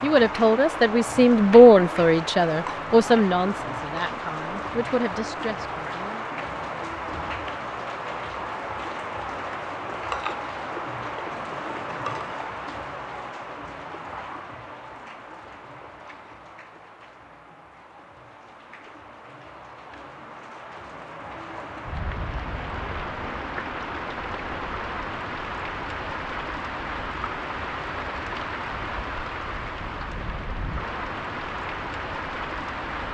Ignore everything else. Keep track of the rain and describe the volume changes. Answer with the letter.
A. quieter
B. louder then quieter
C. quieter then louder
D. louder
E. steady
C.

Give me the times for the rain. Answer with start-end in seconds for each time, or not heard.
0.0-33.1.